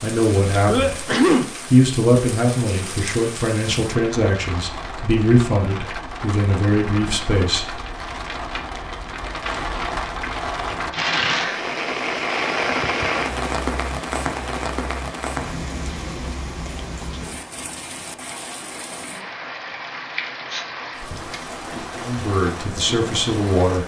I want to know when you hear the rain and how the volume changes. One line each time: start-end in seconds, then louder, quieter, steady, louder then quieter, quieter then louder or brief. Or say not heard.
0.0-23.8 louder then quieter.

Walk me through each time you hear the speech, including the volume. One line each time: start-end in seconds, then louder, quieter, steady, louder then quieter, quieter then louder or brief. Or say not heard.
0.0-1.1 brief
1.7-7.8 steady
21.9-23.8 brief.